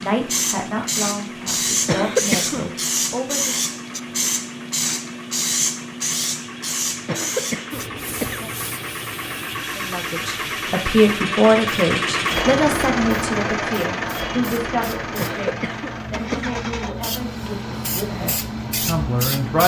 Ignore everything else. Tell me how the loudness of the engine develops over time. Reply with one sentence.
The loudness of the engine goes up, then down.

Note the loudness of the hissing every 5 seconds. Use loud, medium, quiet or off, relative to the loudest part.
loud, loud, quiet, medium.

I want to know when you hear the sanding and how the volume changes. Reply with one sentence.
You can't hear the sanding here.